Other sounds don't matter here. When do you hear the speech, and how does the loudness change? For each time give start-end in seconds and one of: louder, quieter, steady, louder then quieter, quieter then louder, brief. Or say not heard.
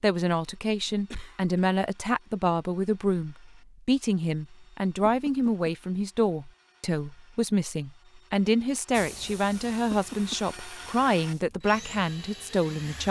0.0-13.0 steady.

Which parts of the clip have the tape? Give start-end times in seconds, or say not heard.
not heard.